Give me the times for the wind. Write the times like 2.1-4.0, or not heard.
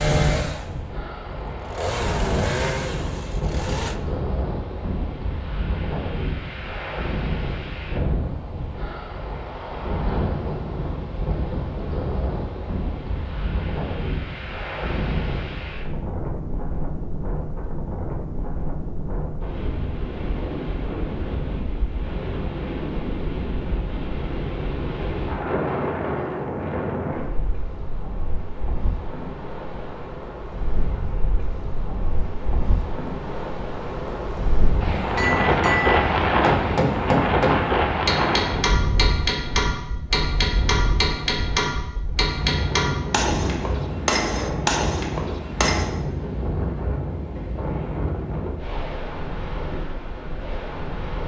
0.0-51.2.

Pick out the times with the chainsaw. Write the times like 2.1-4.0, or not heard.
0.0-4.0.